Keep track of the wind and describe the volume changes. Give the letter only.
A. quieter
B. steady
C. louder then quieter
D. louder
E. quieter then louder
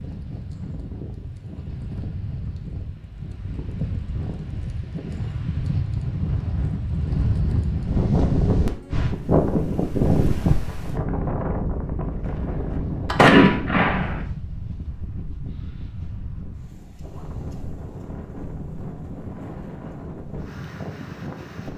C.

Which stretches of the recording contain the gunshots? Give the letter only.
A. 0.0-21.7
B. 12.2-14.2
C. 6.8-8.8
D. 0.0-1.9
B.